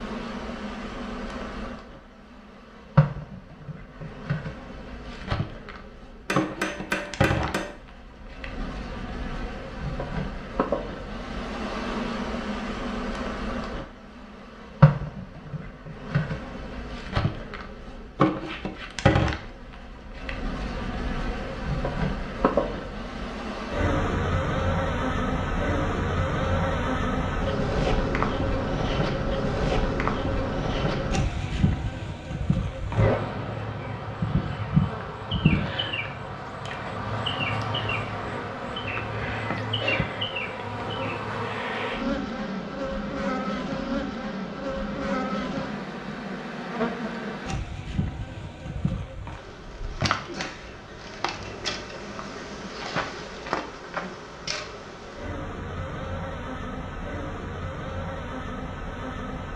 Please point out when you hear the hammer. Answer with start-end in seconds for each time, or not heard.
6.2-7.8.